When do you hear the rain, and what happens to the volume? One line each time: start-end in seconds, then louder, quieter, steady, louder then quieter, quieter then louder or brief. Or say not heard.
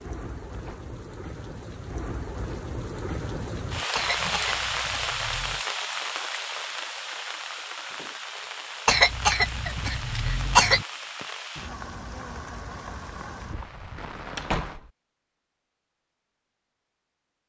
0.0-14.8 louder then quieter.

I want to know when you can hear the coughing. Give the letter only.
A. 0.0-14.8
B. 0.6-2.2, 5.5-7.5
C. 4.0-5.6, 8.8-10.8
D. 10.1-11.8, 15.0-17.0
C.